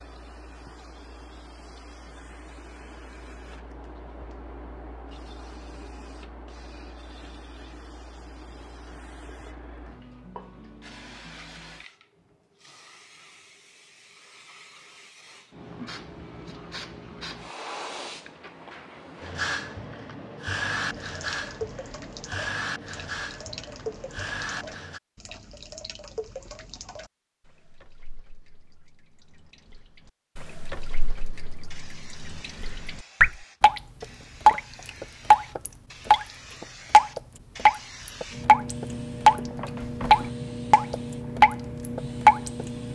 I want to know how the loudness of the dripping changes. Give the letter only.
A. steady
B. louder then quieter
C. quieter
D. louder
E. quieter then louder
E.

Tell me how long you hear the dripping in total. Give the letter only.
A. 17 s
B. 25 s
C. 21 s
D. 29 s
C.